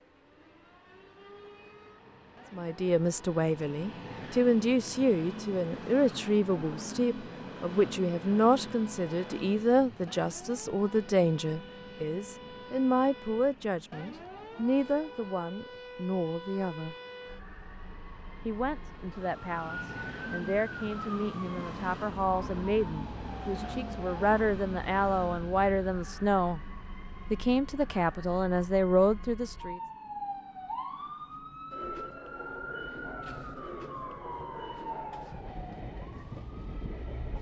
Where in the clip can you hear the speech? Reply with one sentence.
The speech can be heard from 2.5 to 16.9 s, from 18.4 to 26.6 s and from 27.3 to 29.8 s.